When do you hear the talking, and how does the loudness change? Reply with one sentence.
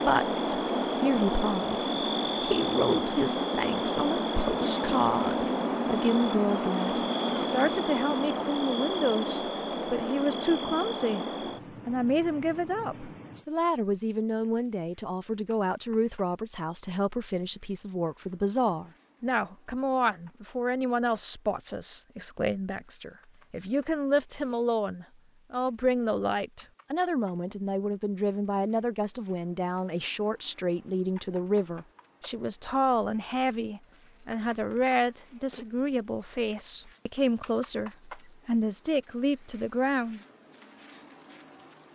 The talking can be heard from 0.0 to 11.2 s, at a steady volume; and from 11.8 to 40.2 s, at a steady volume.